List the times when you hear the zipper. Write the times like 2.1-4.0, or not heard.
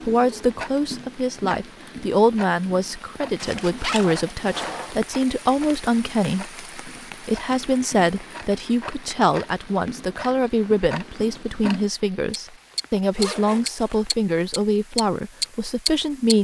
3.4-5.0, 13.2-14.2.